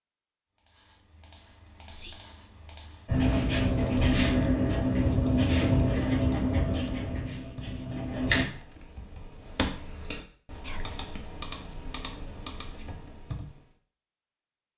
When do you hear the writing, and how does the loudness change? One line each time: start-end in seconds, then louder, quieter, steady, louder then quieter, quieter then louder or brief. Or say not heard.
3.0-8.4 quieter.